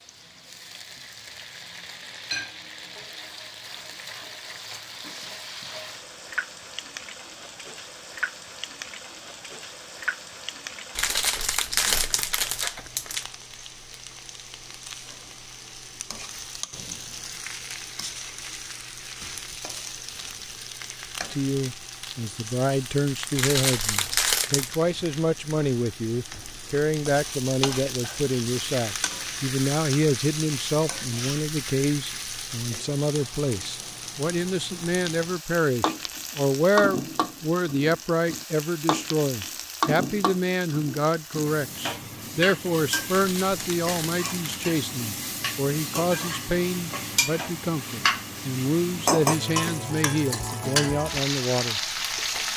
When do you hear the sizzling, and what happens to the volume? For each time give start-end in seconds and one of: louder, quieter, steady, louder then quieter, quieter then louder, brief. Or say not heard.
0.0-52.5 louder.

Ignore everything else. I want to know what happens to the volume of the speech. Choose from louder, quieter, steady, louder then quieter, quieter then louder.
steady.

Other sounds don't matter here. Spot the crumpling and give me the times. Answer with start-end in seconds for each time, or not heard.
10.9-13.2, 23.4-24.8, 43.0-44.8.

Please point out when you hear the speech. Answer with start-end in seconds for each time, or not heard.
21.3-51.8.